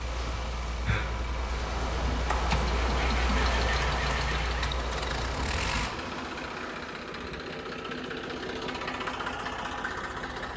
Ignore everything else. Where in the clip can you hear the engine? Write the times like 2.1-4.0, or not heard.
0.0-10.5.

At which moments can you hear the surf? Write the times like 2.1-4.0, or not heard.
0.0-7.0.